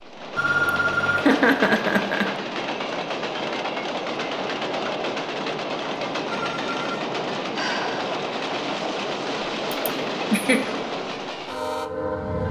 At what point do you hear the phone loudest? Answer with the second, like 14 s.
1 s.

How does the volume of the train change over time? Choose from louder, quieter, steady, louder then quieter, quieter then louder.
steady.